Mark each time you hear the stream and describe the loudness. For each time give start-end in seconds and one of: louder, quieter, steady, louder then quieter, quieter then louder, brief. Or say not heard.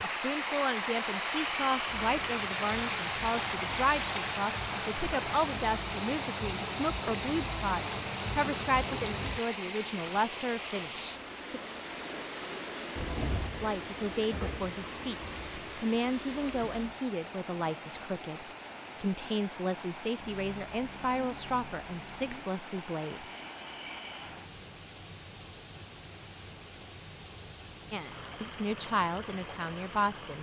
0.0-30.3 quieter.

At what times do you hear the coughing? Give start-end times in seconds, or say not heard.
not heard.